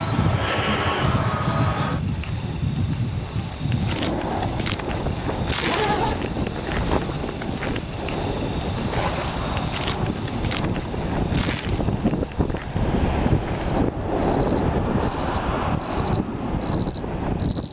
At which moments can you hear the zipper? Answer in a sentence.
You can hear the zipper from 5.5 to 7.2 s and from 8.9 to 9.4 s.